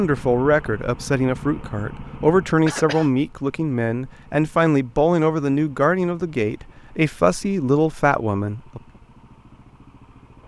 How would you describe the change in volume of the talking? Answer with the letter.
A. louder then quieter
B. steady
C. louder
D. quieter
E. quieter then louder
B.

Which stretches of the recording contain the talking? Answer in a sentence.
The talking can be heard from 0.0 to 8.8 s.